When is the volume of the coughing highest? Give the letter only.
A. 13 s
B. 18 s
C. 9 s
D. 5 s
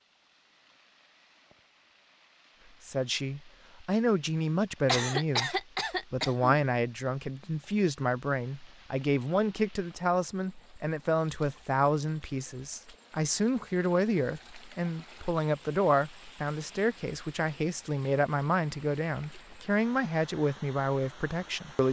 D.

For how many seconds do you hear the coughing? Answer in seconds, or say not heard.
2 s.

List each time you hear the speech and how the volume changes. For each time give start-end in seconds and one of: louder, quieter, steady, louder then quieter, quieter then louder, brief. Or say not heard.
2.8-21.8 steady.